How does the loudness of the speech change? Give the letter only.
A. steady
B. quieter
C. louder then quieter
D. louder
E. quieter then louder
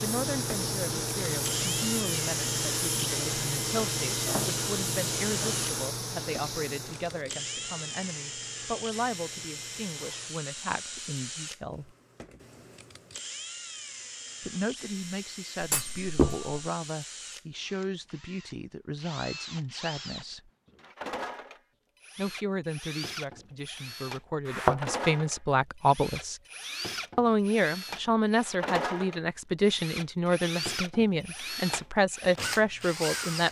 D.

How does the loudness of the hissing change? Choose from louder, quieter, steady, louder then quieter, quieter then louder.
quieter.